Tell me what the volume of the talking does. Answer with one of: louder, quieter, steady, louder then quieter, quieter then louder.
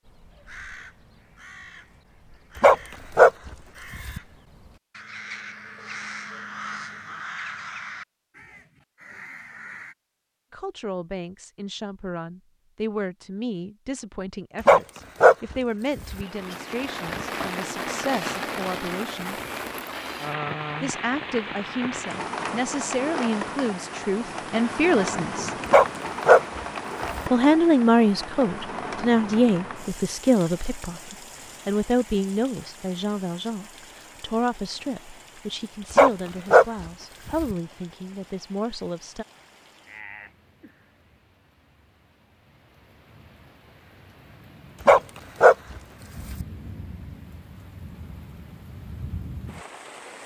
louder then quieter.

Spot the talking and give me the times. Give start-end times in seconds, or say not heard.
10.5-19.4, 20.8-25.6, 27.3-39.2.